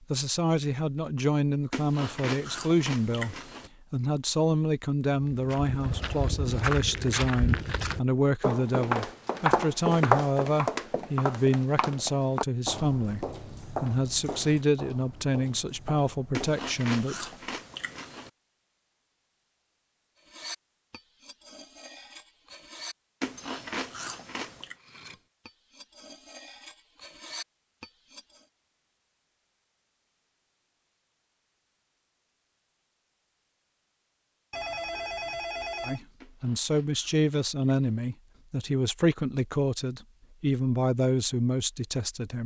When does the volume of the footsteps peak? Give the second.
10 s.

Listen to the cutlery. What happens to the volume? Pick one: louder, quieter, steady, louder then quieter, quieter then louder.
quieter then louder.